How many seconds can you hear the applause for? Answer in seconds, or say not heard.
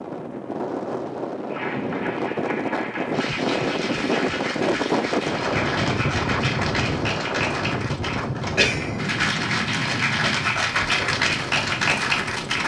11 s.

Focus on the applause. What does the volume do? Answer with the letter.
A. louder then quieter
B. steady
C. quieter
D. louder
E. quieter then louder
D.